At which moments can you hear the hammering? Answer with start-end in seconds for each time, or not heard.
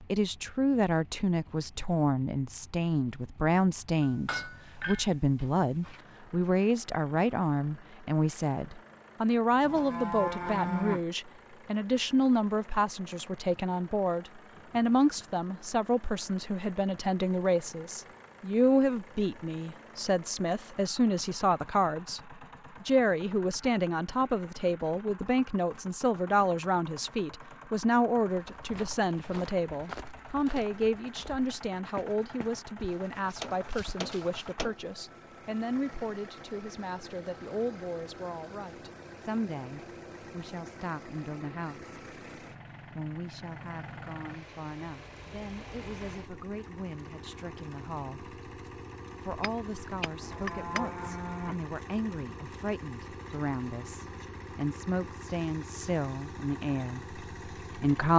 4.0-6.0, 33.4-34.8, 49.3-51.0.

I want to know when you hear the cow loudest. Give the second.
11 s.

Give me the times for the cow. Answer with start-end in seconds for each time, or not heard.
9.7-11.1, 50.2-51.6.